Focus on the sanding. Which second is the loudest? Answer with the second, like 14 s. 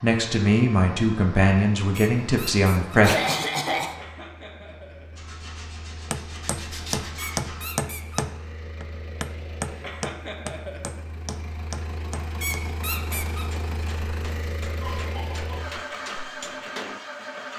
7 s.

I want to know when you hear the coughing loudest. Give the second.
3 s.